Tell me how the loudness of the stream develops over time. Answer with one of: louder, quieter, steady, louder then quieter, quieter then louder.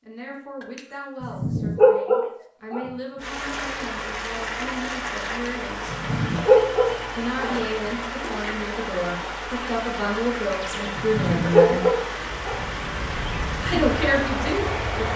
steady.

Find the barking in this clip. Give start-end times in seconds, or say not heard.
0.6-2.9, 5.2-7.6, 10.3-12.7.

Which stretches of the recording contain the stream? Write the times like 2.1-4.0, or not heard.
3.1-15.1.